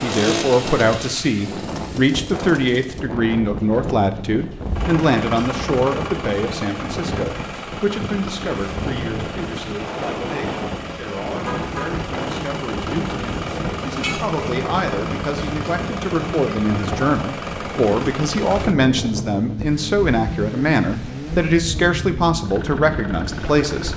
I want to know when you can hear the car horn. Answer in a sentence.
The car horn can be heard from 11.4 to 11.9 s.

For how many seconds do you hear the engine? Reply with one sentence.
You can hear the engine for 24 seconds altogether.